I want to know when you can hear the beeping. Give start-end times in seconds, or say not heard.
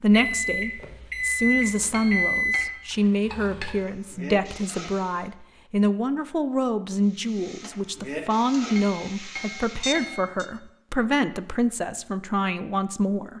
0.1-2.7, 9.8-10.4.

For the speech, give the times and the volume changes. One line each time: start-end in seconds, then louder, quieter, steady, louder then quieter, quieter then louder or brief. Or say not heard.
0.0-13.3 steady.